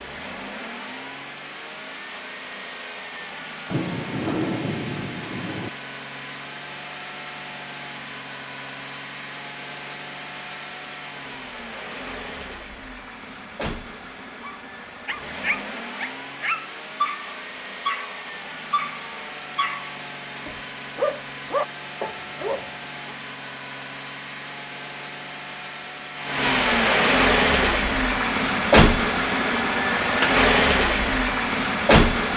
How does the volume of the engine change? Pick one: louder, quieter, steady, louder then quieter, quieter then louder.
louder.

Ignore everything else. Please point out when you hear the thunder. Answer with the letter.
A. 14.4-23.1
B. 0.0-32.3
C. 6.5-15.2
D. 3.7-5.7
D.